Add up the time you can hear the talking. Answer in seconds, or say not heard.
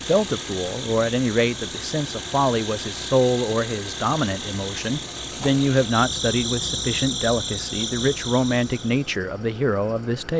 10 s.